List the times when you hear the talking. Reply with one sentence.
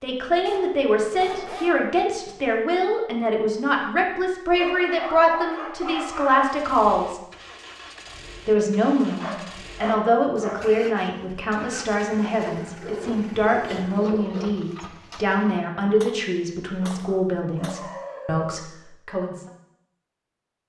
You can hear the talking from 0.0 to 7.2 s and from 8.4 to 19.4 s.